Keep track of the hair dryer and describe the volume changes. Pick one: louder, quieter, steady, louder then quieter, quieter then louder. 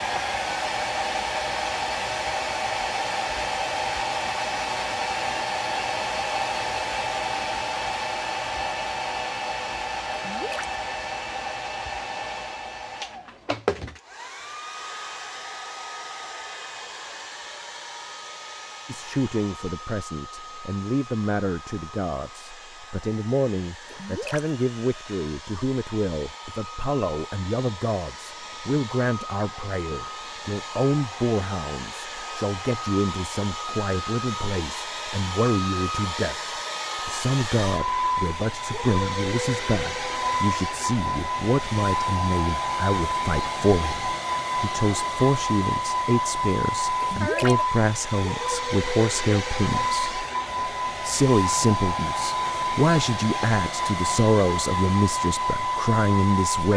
quieter then louder.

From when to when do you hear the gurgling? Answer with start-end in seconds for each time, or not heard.
10.2-10.8, 23.9-24.5, 47.0-47.5.